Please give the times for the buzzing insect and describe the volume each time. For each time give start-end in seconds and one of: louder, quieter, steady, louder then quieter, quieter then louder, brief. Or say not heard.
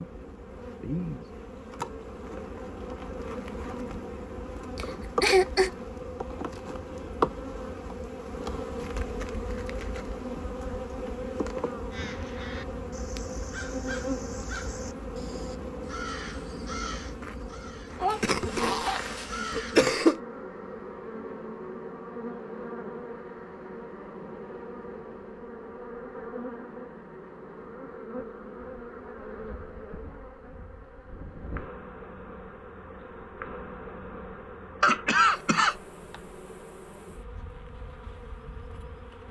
0.0-39.2 quieter.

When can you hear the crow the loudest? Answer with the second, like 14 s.
18 s.